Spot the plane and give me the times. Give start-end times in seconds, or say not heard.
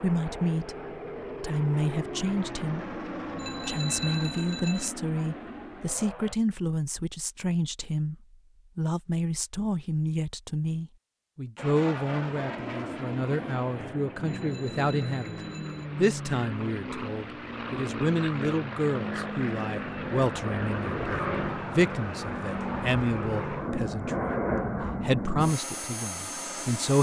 0.0-6.3, 11.6-26.9.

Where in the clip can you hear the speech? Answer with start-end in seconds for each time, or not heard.
0.0-0.8, 1.4-2.9, 3.6-8.2, 8.8-26.9.